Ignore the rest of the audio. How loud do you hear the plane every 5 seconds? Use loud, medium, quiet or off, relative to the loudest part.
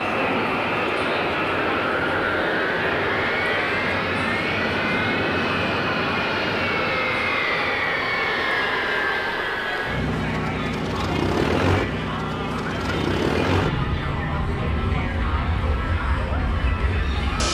loud, loud, loud, medium.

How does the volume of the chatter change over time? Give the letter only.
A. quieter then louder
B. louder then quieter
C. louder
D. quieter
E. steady
E.